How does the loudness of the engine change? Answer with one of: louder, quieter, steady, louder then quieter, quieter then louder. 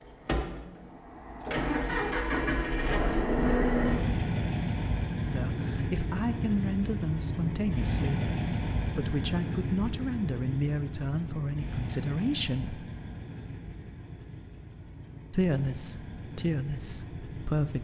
quieter.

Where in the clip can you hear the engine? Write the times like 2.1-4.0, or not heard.
0.0-17.7.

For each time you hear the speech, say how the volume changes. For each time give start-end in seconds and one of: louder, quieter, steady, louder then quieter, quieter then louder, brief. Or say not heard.
5.2-12.9 steady
15.3-17.7 brief.